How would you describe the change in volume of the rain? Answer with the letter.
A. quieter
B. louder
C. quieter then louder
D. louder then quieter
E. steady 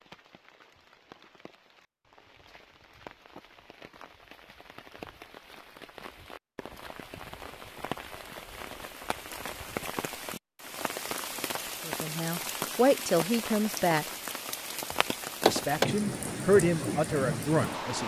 B.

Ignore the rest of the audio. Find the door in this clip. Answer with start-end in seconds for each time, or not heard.
15.4-15.9.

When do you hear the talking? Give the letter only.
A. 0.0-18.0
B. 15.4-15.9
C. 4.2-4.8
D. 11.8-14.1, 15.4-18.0
D.